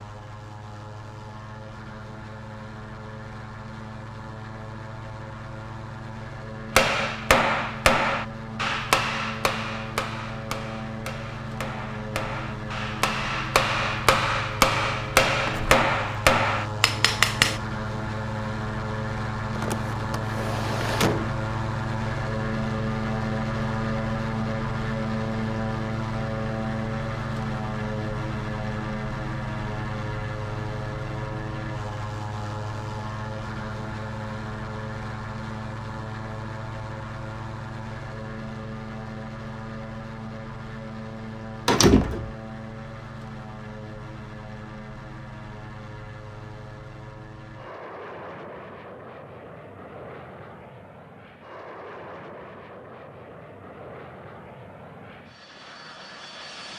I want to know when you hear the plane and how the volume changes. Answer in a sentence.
You can hear the plane from 0.0 to 56.7 s, getting louder then quieter.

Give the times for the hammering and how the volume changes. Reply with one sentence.
The hammering can be heard from 6.8 to 17.6 s, getting quieter then louder.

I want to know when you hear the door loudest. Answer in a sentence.
The loudest moment of the door is at 42 seconds.